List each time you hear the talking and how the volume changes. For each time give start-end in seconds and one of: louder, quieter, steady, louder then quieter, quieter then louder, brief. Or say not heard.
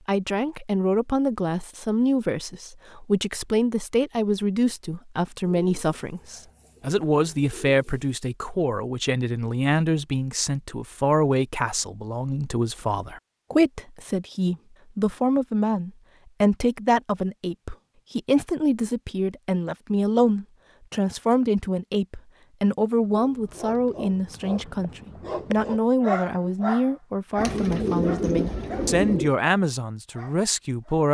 0.1-31.0 steady.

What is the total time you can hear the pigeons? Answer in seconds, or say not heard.
5 s.